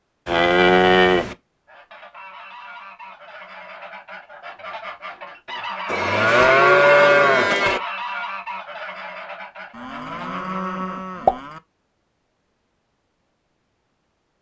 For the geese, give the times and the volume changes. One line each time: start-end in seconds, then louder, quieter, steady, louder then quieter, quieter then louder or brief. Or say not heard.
1.6-10.6 louder then quieter.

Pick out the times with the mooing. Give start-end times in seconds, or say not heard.
0.2-1.4, 5.8-7.8, 9.8-11.6.